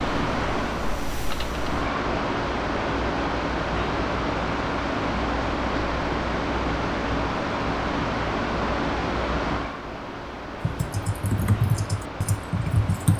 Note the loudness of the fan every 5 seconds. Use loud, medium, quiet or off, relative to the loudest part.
loud, loud, medium.